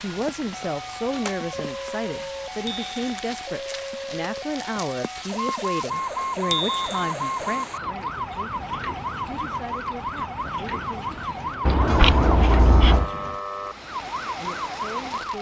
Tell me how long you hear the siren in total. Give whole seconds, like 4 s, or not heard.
15 s.